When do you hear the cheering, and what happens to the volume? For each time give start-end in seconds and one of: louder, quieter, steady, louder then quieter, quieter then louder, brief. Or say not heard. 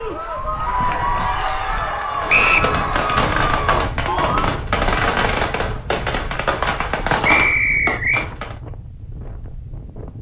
0.0-4.5 steady.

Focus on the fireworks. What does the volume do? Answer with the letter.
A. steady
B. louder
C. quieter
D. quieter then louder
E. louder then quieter
A.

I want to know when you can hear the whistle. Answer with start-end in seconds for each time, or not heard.
2.2-2.7, 7.2-8.2.